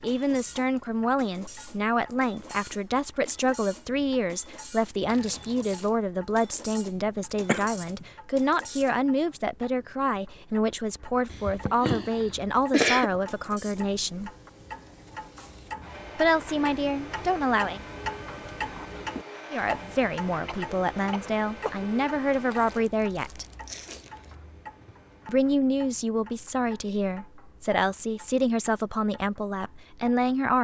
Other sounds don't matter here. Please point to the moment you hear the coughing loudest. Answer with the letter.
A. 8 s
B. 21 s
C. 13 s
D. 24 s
C.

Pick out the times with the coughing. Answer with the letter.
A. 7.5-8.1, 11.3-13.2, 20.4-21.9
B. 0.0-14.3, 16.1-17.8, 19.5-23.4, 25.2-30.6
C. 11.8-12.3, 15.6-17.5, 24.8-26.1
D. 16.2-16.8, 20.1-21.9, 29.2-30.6
A.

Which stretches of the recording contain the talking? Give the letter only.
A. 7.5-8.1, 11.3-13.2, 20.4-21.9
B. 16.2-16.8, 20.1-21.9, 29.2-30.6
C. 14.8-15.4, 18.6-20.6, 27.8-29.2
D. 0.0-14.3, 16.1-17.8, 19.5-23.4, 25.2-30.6
D.